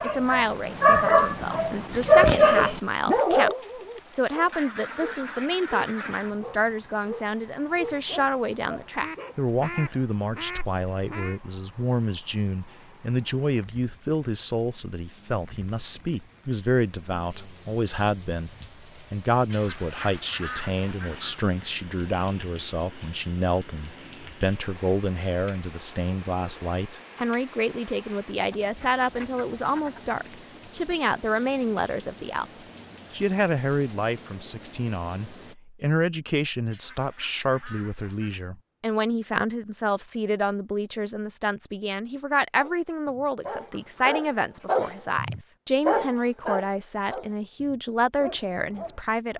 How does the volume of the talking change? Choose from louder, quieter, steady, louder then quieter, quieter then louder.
steady.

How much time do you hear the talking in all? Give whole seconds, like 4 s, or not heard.
49 s.